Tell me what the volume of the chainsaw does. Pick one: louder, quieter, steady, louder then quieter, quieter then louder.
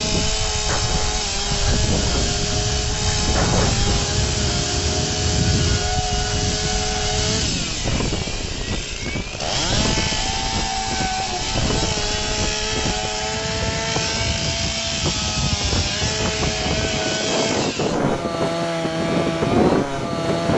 steady.